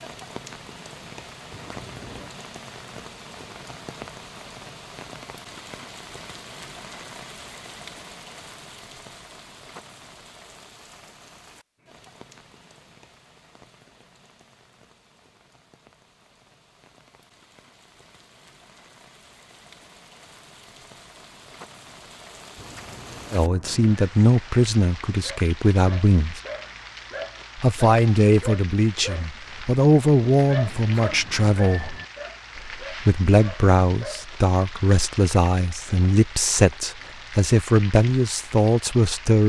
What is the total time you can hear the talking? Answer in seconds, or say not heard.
14 s.